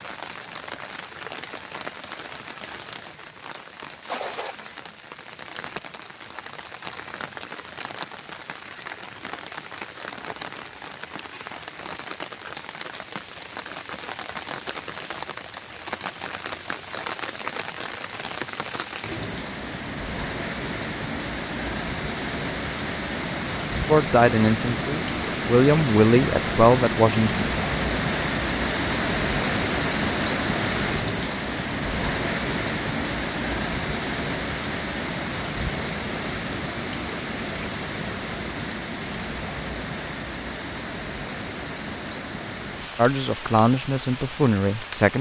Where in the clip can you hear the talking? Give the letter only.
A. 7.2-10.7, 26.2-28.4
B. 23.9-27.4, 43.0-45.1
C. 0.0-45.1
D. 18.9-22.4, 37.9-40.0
B.